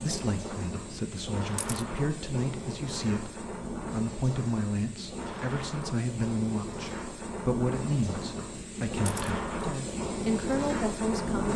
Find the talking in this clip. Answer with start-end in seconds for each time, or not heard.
0.0-11.5.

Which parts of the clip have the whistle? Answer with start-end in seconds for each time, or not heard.
not heard.